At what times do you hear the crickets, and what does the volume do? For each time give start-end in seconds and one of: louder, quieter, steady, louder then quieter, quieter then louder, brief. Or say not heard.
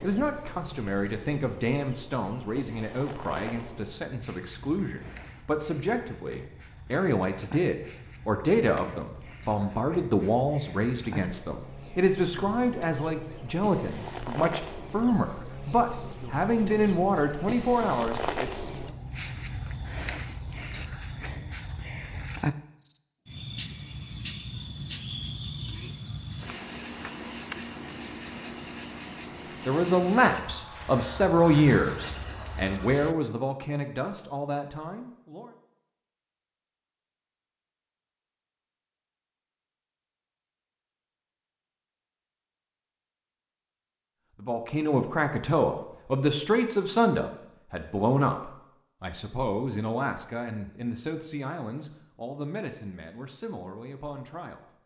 0.0-33.1 louder.